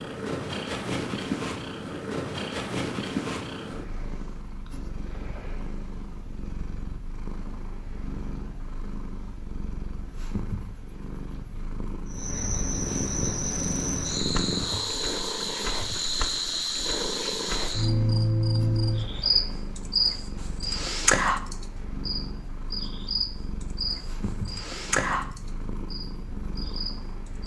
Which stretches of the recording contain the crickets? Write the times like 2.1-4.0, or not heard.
12.1-27.4.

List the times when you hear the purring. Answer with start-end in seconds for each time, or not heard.
0.0-27.4.